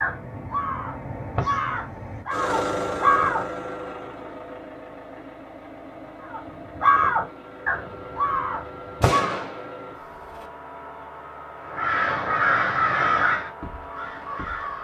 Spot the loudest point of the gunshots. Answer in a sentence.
The loudest moment of the gunshots is at 9 seconds.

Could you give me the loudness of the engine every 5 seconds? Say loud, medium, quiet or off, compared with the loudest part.
loud, medium, medium.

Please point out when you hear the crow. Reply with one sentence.
The crow can be heard from 0.0 to 3.5 s, from 6.2 to 9.4 s and from 11.7 to 14.7 s.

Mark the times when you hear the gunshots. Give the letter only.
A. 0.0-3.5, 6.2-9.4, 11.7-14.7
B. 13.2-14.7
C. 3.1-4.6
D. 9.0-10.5
D.